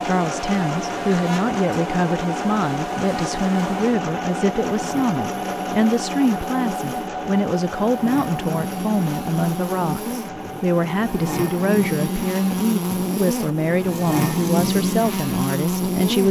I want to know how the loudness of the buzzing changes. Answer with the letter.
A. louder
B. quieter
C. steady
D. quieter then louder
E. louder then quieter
A.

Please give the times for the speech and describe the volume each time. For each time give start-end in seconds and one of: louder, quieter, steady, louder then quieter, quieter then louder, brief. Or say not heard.
0.0-16.2 steady.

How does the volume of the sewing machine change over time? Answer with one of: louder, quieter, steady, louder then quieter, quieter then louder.
quieter.